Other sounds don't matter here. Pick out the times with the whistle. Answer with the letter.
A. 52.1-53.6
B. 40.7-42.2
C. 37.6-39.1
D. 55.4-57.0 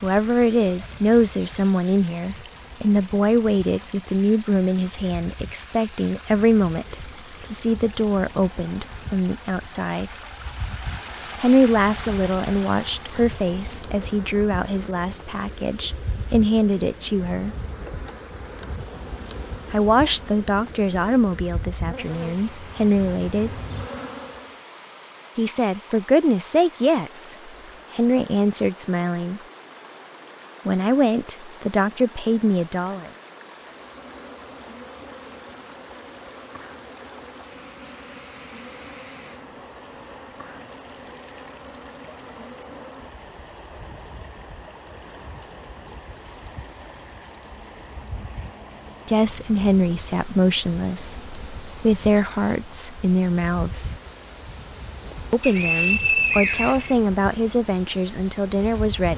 D.